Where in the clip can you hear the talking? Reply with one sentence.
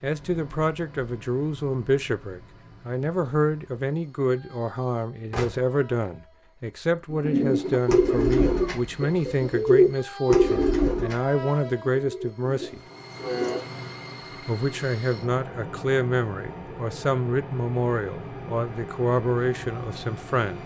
You can hear the talking from 0.0 to 12.8 s and from 14.4 to 20.6 s.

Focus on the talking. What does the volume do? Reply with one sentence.
The loudness of the talking stays about the same.